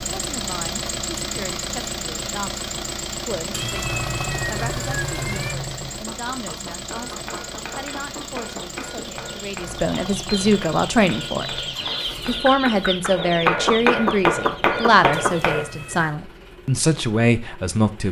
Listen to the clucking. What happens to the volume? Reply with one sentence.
The volume of the clucking goes up.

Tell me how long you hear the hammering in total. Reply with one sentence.
You can hear the hammering for 9 seconds altogether.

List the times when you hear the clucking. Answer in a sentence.
The clucking can be heard from 6.0 to 15.5 s.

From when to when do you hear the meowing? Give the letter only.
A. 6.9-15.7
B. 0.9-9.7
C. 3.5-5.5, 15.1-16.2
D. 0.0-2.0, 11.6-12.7
C.